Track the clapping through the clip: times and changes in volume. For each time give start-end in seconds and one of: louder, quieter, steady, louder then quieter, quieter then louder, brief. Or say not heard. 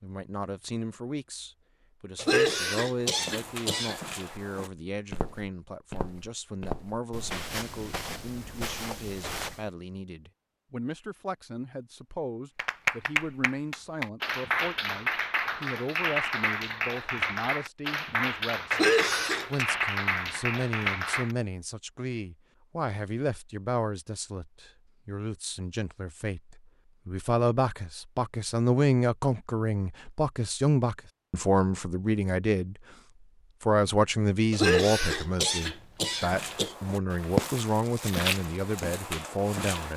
12.6-21.4 steady.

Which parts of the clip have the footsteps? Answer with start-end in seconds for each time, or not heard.
3.0-9.7, 36.2-39.9.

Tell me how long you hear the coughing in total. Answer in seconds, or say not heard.
5 s.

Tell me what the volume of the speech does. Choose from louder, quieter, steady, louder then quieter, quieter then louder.
louder.